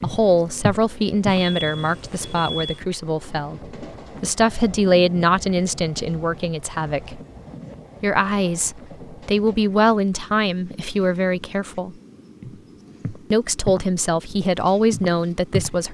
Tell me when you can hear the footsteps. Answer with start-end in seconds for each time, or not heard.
0.0-1.5, 12.4-15.8.